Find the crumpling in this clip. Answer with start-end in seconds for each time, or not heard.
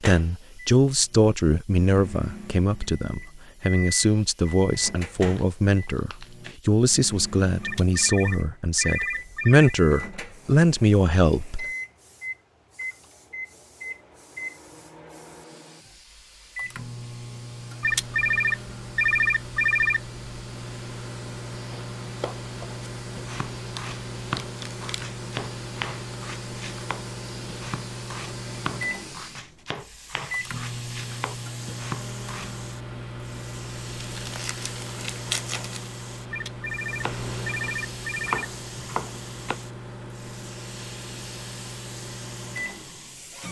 5.3-6.6, 23.8-25.1, 34.0-35.9.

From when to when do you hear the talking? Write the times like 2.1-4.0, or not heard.
0.0-11.7.